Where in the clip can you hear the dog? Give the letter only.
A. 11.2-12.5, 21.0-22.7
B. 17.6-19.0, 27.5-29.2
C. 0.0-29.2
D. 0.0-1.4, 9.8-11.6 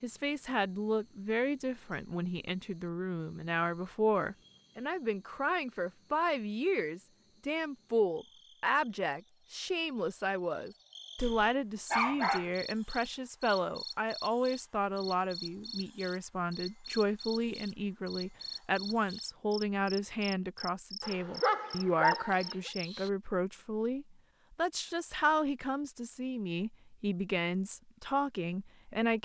A.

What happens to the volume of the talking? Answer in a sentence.
The loudness of the talking stays about the same.